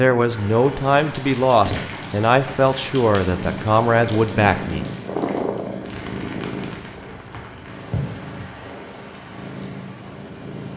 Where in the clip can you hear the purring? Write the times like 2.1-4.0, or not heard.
0.2-10.7.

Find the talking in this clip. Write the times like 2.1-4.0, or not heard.
0.0-4.8.